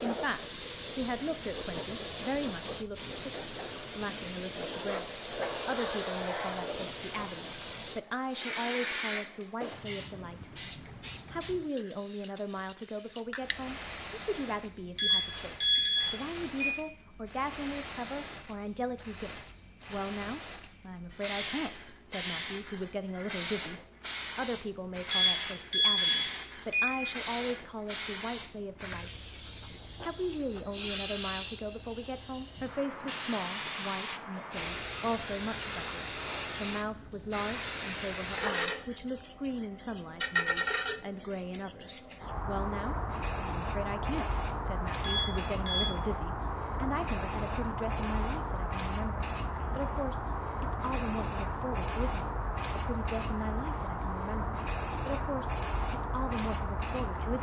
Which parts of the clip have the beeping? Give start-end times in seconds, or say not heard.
14.9-16.8, 25.1-27.1, 45.0-45.9.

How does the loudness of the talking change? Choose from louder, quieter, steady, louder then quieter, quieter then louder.
steady.